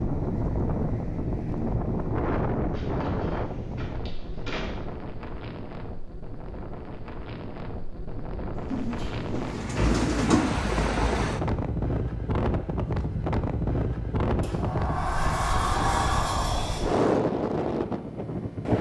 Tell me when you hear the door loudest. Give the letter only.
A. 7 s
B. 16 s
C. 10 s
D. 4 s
B.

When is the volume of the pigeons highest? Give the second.
10 s.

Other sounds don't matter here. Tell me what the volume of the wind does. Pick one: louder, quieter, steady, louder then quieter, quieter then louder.
quieter then louder.